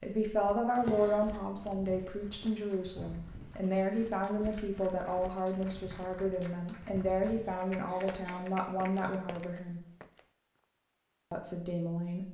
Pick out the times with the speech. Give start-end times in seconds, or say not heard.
0.0-9.8, 11.3-12.2.